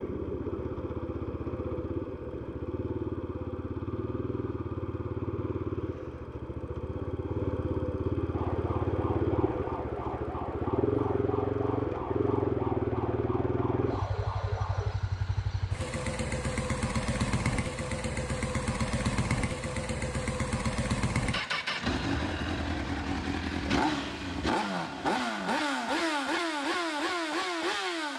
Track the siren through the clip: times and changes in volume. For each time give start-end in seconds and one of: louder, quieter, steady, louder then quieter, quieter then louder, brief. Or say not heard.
8.3-14.9 steady.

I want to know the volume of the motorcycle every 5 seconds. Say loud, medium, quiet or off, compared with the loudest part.
medium, loud, loud, loud, loud, loud.